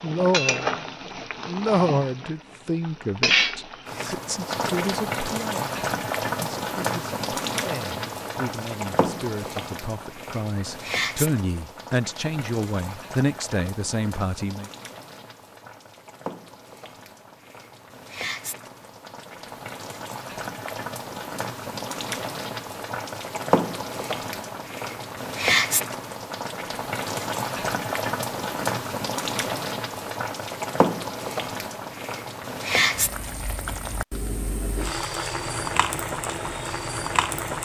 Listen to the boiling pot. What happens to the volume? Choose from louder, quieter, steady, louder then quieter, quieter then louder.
quieter then louder.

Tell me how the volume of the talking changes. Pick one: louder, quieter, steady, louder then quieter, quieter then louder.
quieter then louder.